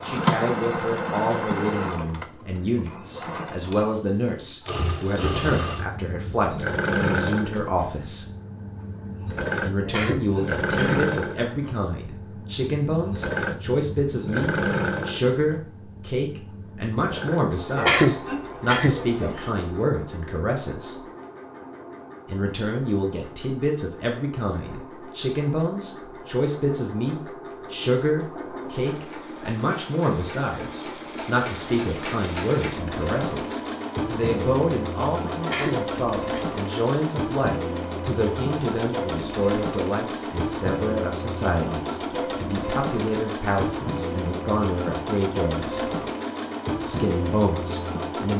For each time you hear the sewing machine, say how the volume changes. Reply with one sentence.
The sewing machine can be heard from 0.0 to 48.3 s, getting quieter then louder.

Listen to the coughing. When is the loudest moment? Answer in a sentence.
The volume of the coughing peaks at 18 seconds.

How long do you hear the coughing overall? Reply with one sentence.
You can hear the coughing for 4 seconds altogether.